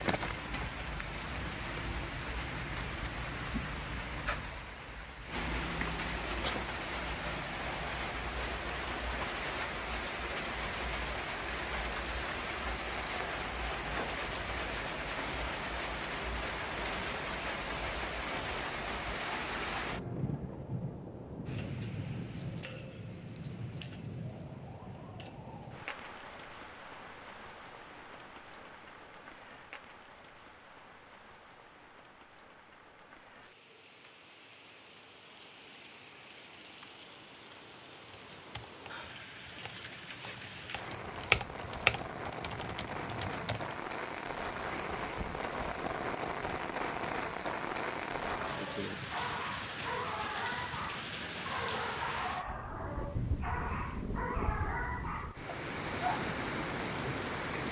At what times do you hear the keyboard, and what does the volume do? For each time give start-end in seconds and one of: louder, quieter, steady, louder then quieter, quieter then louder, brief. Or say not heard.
38.0-43.8 louder then quieter.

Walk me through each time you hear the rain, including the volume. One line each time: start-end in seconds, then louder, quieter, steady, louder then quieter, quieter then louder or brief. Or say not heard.
0.0-57.6 quieter then louder.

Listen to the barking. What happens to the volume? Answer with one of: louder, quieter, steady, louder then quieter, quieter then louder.
steady.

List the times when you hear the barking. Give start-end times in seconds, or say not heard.
48.4-56.2.